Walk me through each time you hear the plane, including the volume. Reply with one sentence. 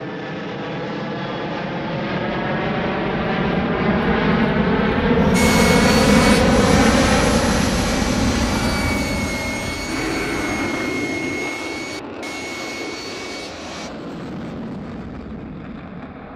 You can hear the plane from 0.0 to 16.3 s, getting louder then quieter.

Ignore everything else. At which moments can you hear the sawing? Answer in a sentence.
You can hear the sawing from 5.3 to 13.9 s.